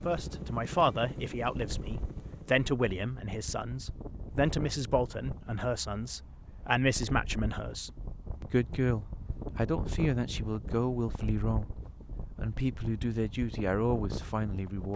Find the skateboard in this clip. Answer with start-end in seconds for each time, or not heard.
not heard.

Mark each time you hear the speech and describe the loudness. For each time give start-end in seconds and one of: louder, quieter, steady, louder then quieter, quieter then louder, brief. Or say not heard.
0.1-14.9 steady.